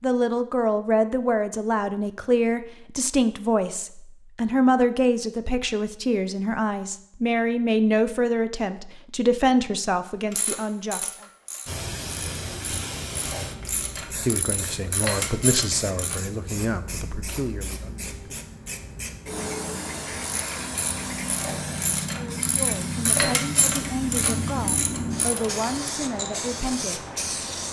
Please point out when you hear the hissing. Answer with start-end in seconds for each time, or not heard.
11.7-27.6.